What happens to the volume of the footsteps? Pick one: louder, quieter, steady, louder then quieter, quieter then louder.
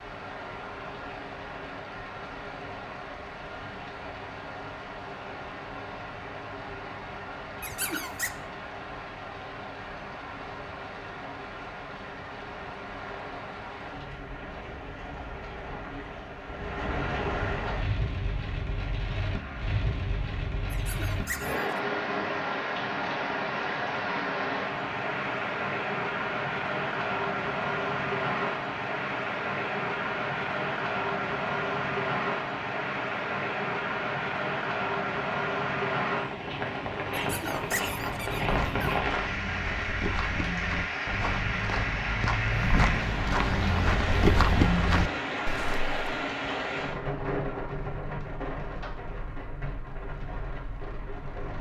louder.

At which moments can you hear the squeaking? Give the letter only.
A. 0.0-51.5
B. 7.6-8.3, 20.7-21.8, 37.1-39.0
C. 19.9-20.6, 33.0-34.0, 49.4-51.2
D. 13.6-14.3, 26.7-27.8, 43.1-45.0
B.